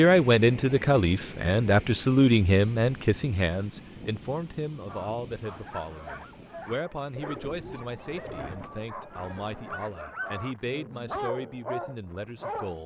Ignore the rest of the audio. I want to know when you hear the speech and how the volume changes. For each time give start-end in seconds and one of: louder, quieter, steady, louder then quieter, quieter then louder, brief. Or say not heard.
0.0-12.8 quieter.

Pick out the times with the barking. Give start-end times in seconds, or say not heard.
4.8-12.8.